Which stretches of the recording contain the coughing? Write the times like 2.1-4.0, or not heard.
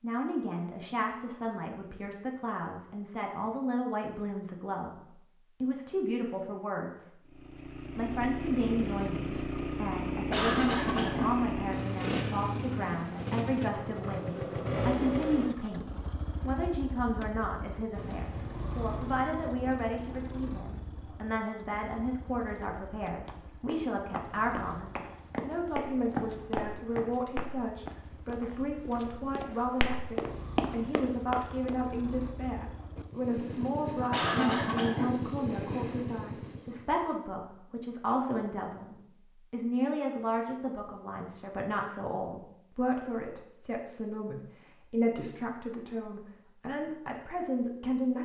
10.3-11.3, 34.1-35.1.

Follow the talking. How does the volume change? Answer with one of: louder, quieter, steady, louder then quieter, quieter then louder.
steady.